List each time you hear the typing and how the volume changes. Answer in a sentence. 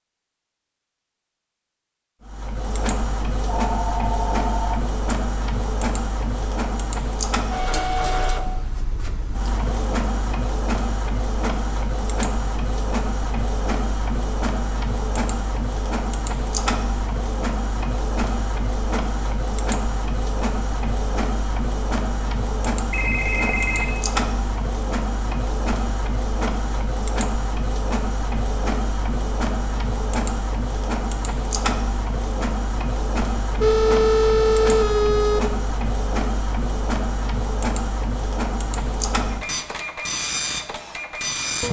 The typing can't be heard in this clip.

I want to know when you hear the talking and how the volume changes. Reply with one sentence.
The talking can't be heard in this clip.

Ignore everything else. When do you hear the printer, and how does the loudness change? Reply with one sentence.
You can hear the printer from 2.2 to 41.6 s, at a steady volume.